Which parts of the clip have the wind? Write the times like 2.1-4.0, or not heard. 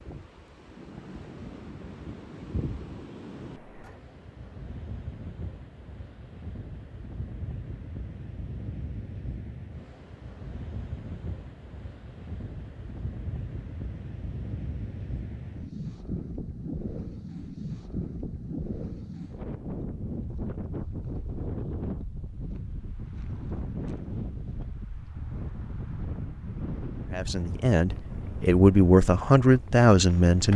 0.0-30.5.